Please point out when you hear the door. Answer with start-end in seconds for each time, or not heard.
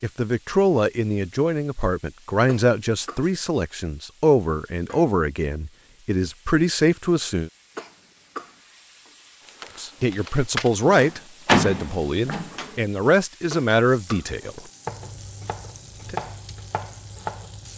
10.9-12.7.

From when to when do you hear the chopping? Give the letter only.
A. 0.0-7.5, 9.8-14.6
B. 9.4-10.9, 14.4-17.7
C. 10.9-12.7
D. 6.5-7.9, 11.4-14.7
B.